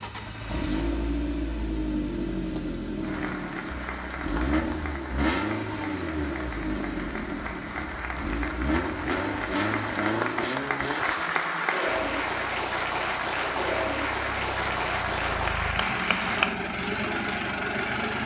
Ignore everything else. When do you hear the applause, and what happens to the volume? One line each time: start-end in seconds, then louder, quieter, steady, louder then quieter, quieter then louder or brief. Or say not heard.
3.0-16.5 louder.